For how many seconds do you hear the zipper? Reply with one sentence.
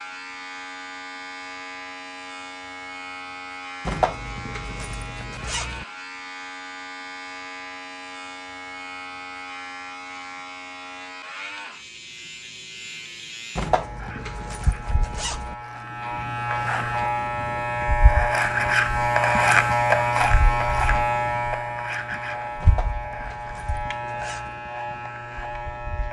The zipper can be heard for 6 seconds in total.